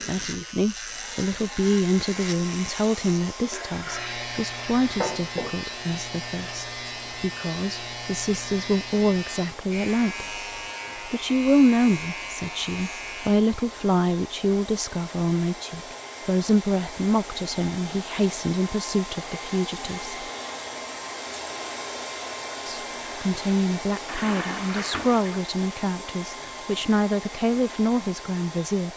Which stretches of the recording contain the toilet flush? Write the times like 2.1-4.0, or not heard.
3.5-5.5, 24.1-25.4.